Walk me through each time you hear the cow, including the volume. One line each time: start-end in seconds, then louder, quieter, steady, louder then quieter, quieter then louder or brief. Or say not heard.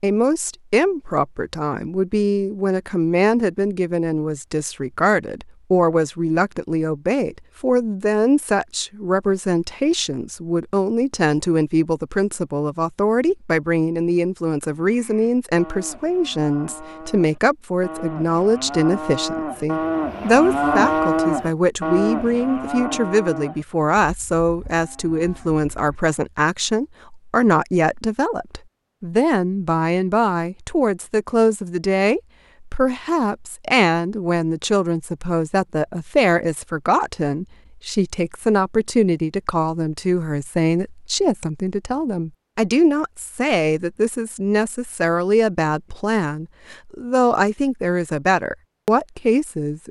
14.7-25.9 louder then quieter.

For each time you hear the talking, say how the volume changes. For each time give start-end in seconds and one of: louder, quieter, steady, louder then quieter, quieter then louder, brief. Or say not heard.
0.0-49.8 steady.